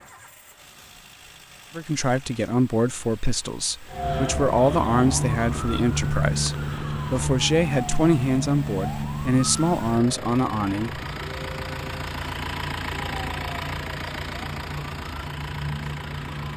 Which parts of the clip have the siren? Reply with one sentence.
You can hear the siren from 3.9 to 16.5 s.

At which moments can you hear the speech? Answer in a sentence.
The speech can be heard from 1.8 to 11.0 s.